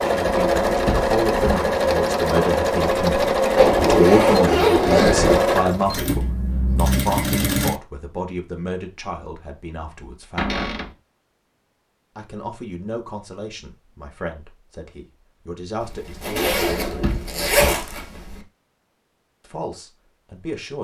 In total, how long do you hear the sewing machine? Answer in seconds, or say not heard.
8 s.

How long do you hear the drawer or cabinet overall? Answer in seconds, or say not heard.
3 s.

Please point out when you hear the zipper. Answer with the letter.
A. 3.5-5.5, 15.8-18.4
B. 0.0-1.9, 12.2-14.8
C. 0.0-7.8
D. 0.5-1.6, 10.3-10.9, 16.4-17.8
A.